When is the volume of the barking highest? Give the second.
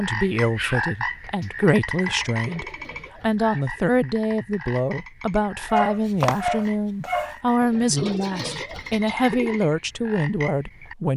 6 s.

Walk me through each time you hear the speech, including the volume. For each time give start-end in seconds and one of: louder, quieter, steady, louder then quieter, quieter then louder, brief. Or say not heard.
0.0-11.1 steady.